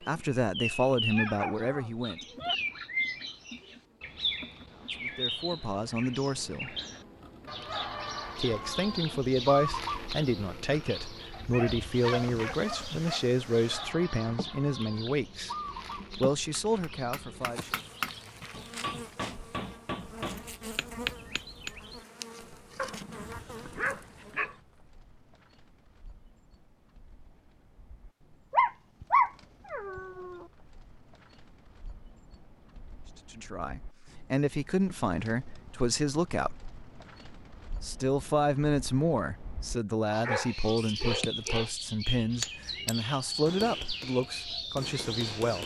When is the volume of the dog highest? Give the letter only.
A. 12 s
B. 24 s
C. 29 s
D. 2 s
C.